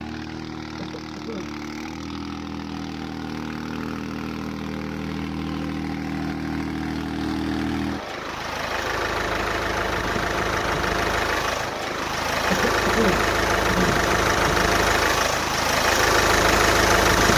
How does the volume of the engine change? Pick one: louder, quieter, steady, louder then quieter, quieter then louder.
louder.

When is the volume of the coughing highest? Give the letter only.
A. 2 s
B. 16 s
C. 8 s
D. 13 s
D.